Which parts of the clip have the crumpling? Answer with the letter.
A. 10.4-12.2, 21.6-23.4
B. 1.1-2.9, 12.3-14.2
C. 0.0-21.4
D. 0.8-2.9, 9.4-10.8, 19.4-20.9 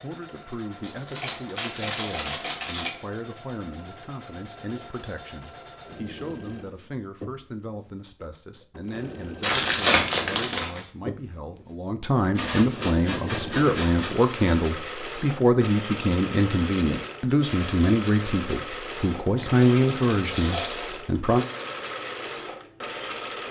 D.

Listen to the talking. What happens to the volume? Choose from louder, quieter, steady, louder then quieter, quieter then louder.
louder.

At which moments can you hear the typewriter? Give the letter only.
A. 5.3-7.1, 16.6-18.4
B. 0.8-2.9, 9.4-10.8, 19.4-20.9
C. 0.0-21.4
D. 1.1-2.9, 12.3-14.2
D.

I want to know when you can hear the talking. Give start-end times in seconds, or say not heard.
0.0-21.4.